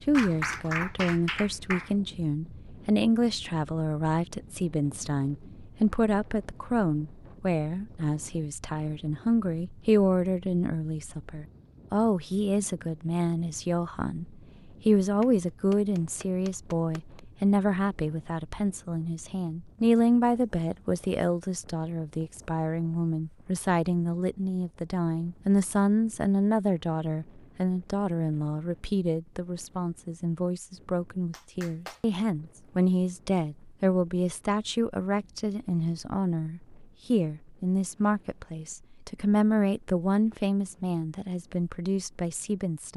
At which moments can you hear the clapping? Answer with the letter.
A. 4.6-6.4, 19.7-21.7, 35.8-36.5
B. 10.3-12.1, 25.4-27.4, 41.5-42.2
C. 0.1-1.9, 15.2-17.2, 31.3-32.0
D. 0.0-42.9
C.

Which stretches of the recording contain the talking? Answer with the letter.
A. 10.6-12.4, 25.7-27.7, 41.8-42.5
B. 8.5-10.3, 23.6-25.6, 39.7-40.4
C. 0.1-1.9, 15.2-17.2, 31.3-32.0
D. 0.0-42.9
D.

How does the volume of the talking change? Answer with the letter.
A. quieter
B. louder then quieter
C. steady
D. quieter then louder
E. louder
C.